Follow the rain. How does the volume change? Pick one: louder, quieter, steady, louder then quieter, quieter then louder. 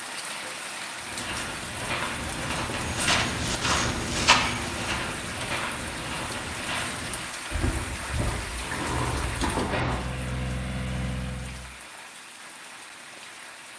quieter.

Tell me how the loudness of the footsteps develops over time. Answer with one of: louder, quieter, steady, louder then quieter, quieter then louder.
louder then quieter.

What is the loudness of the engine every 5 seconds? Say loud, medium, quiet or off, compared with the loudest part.
off, loud, loud.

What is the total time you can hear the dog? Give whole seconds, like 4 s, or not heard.
not heard.